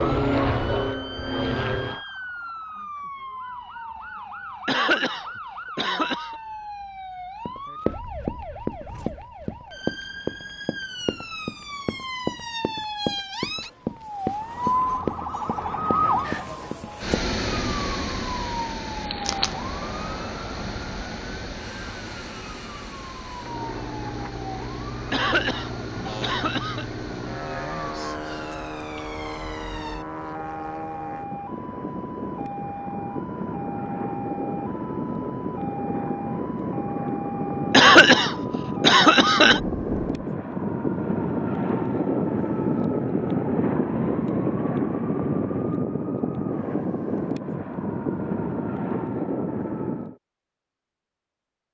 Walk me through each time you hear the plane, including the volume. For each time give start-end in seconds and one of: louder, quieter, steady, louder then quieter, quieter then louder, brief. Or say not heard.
0.0-2.0 brief
19.2-50.1 louder.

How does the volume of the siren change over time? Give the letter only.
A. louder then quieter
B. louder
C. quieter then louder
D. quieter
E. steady
A.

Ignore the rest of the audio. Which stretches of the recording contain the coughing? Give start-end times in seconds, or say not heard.
4.7-6.3, 25.1-26.9, 37.7-39.6.